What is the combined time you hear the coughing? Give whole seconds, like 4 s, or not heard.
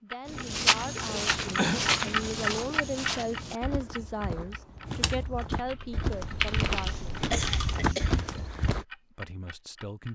2 s.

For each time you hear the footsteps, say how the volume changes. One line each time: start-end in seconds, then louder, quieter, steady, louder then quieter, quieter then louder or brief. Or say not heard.
0.2-8.8 quieter then louder.